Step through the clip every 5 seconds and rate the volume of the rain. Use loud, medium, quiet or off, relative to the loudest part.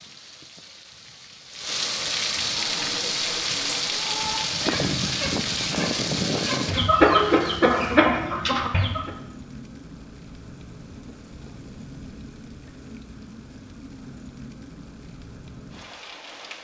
loud, loud, quiet, quiet.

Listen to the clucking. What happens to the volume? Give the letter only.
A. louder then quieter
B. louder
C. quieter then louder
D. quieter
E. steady
B.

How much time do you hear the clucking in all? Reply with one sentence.
You can hear the clucking for 7 seconds altogether.